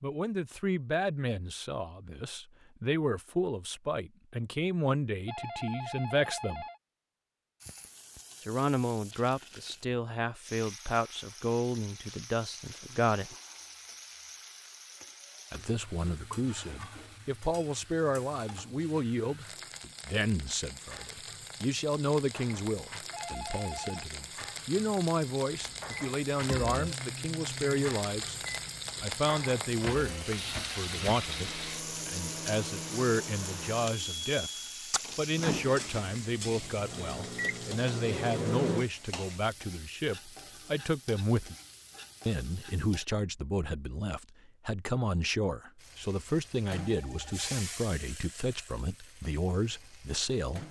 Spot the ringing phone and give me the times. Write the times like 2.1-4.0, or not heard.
5.2-6.8, 23.1-24.1, 46.8-47.6.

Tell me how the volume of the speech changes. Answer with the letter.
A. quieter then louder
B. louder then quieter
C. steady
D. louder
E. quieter
C.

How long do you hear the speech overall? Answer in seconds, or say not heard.
45 s.